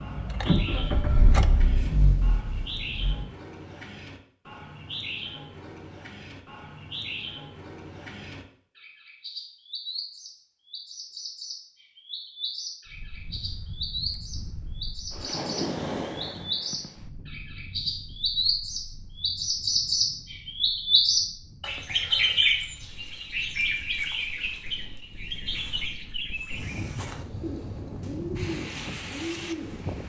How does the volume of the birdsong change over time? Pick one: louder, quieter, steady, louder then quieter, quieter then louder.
louder then quieter.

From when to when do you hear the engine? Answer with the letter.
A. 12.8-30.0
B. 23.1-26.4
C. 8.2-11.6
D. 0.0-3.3
D.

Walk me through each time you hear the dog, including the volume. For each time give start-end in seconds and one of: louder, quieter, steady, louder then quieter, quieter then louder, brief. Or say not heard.
not heard.